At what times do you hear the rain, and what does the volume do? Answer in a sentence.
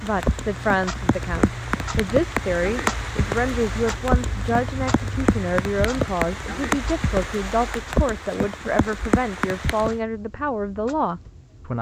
The rain can be heard from 0.0 to 9.9 s, at a steady volume.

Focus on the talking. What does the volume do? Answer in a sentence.
The volume of the talking stays about the same.